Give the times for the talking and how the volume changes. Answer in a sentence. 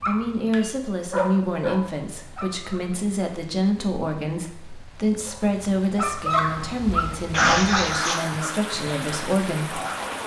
The talking can be heard from 0.1 to 9.8 s, at a steady volume.